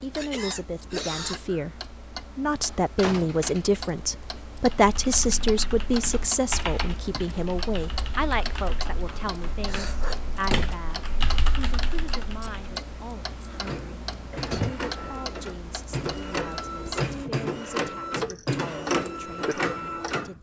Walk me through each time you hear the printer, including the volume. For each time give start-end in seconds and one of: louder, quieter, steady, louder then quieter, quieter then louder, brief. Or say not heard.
13.4-20.3 louder.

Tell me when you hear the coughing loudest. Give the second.
1 s.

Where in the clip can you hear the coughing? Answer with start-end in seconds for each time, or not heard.
0.1-1.4, 9.7-10.4, 14.3-15.3.